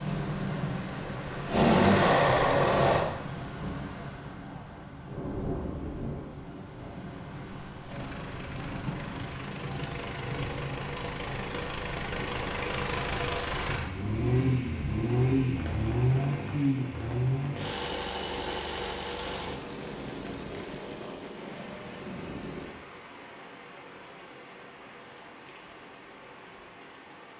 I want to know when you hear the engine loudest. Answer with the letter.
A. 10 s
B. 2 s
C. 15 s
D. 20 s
B.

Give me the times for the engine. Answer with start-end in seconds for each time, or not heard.
0.0-3.0, 7.8-22.8.